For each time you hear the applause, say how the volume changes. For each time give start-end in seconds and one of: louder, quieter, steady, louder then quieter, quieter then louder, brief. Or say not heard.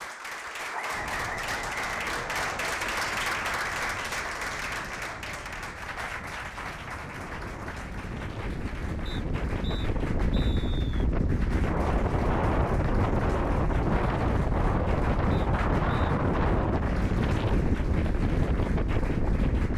0.0-19.7 quieter.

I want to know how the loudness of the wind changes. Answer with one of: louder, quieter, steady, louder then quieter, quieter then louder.
louder.